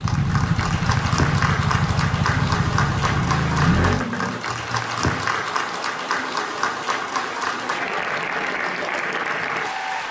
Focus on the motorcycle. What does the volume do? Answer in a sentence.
The loudness of the motorcycle stays about the same.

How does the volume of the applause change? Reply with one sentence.
The loudness of the applause stays about the same.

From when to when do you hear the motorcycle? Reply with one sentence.
You can hear the motorcycle from 0.0 to 4.5 s.